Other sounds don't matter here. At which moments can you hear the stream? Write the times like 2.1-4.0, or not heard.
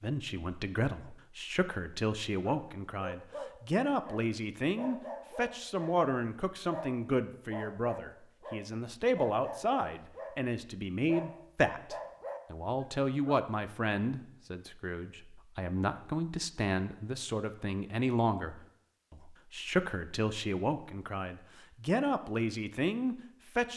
not heard.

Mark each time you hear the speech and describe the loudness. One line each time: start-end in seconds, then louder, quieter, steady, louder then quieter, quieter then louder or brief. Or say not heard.
0.0-23.7 steady.